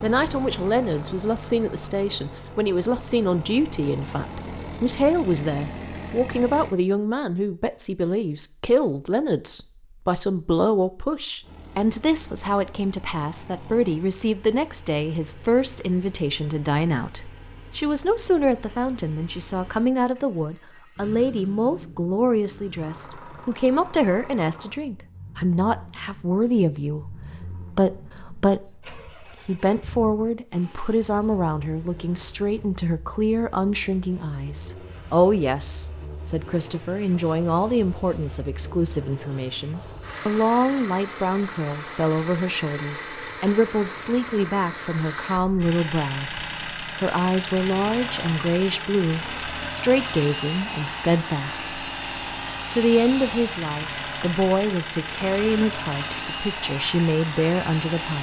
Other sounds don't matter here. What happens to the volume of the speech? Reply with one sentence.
The volume of the speech stays about the same.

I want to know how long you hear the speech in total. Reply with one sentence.
You can hear the speech for 57 seconds altogether.